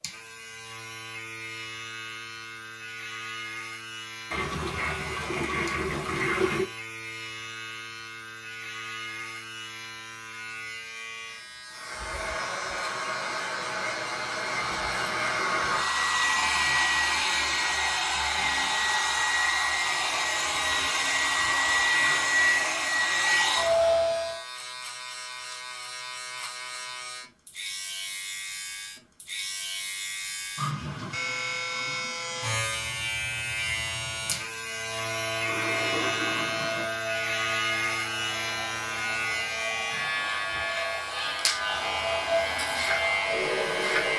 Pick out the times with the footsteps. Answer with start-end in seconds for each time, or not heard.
not heard.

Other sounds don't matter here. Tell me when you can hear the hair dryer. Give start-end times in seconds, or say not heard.
11.7-24.4, 34.6-44.1.